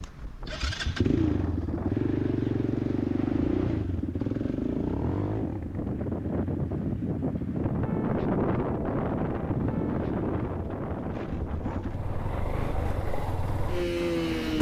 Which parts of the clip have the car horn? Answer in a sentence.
You can't hear the car horn here.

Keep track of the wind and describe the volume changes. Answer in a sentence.
The loudness of the wind goes up, then down.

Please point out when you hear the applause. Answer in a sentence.
The applause can't be heard in this clip.